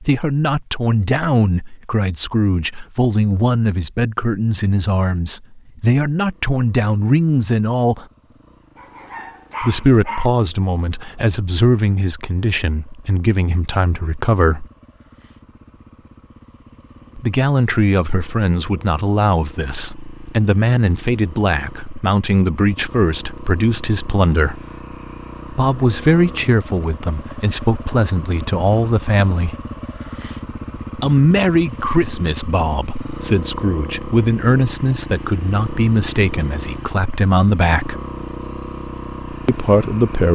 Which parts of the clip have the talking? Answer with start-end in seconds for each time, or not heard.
0.0-8.1, 9.6-14.7, 17.1-24.6, 25.5-29.6, 30.9-38.0, 39.5-40.3.